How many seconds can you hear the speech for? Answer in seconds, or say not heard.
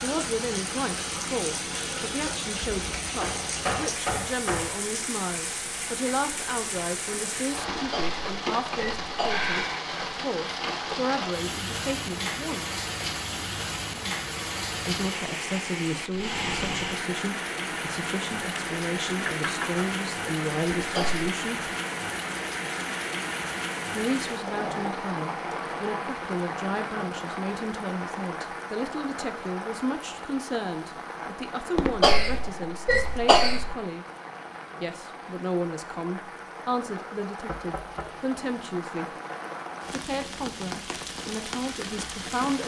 37 s.